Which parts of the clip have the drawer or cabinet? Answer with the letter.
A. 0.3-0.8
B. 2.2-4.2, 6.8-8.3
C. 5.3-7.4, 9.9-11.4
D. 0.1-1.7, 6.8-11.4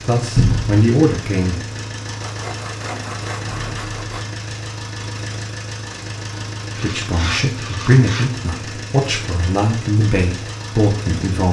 A.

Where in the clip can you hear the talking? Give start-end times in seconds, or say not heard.
0.1-1.7, 6.8-11.4.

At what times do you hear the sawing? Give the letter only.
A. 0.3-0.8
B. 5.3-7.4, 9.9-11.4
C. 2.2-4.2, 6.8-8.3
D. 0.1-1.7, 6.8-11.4
C.